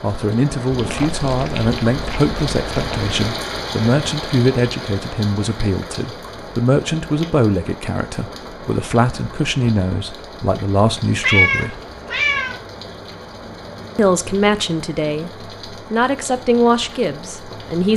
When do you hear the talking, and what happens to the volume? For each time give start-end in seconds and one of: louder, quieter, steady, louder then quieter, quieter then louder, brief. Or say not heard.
0.0-11.8 steady
13.9-15.3 brief
15.9-17.9 brief.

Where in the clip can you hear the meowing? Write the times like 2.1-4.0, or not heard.
0.7-3.1, 11.2-12.6.